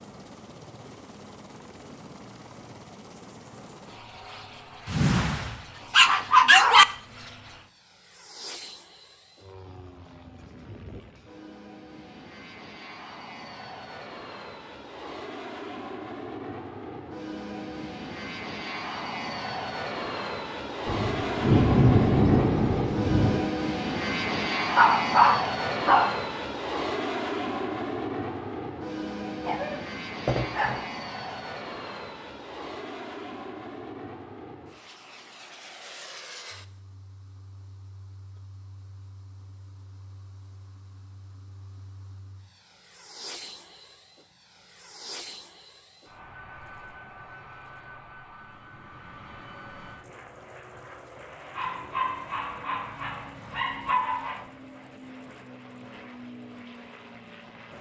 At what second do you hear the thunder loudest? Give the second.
22 s.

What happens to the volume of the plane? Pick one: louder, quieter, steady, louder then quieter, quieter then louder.
louder then quieter.